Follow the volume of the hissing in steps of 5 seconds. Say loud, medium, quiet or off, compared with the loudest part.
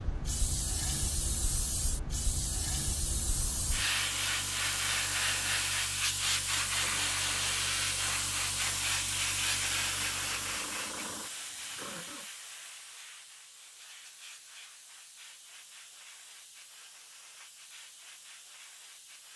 loud, loud, medium, quiet.